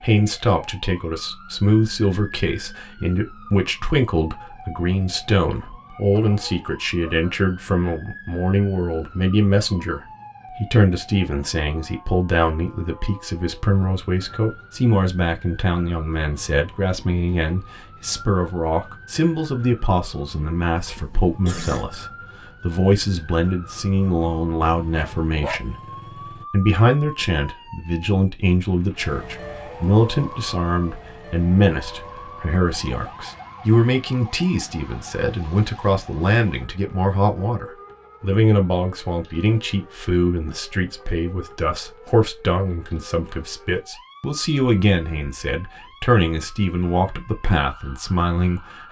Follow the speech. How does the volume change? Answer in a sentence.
The volume of the speech stays about the same.